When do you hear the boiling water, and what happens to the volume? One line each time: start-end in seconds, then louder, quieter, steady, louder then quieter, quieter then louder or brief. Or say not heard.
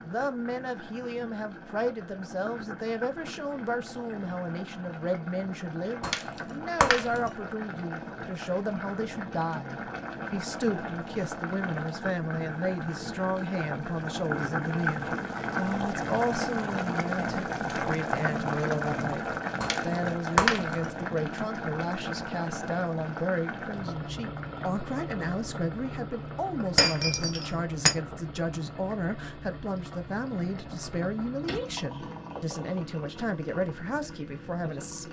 0.0-35.0 louder then quieter.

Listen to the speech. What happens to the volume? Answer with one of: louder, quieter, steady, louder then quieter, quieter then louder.
steady.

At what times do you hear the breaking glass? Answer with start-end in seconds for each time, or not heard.
6.0-7.3, 19.6-20.9, 26.8-27.9.